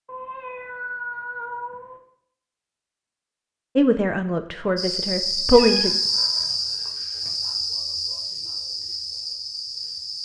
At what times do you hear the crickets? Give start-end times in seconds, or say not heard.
4.8-10.1.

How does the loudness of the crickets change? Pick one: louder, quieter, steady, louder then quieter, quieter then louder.
quieter.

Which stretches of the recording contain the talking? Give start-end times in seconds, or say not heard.
3.8-5.9.